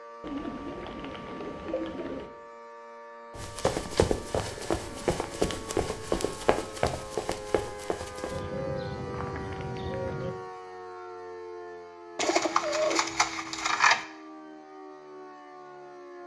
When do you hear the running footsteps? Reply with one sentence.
You can hear the running footsteps from 3.4 to 8.4 s.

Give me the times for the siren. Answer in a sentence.
The siren can be heard from 0.0 to 16.2 s.